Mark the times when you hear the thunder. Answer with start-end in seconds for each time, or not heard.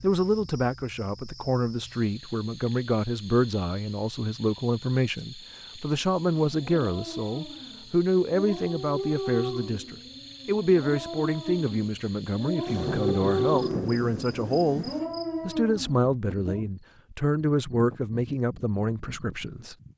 12.7-15.0.